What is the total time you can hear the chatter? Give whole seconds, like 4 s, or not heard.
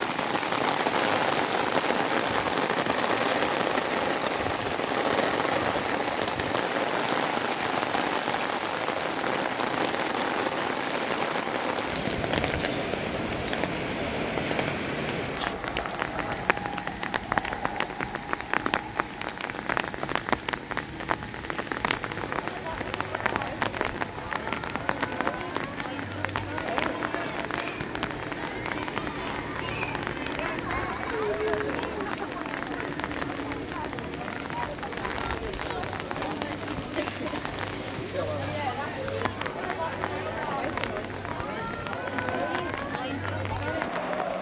22 s.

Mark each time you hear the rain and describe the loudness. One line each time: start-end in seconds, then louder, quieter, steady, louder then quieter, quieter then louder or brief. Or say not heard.
0.0-44.3 quieter.